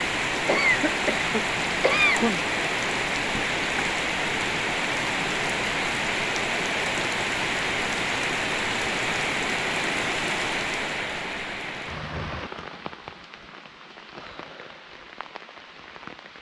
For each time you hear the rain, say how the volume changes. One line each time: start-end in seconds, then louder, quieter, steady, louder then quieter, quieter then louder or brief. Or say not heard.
0.0-16.3 quieter.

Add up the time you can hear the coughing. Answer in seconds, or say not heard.
2 s.